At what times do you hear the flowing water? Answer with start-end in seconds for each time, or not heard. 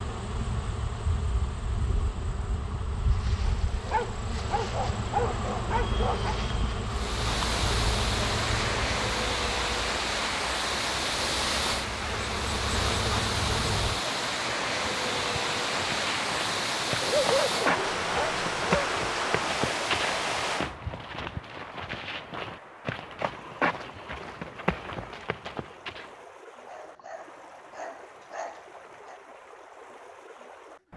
6.8-30.9.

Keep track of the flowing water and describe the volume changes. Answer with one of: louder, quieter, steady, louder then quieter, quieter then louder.
quieter.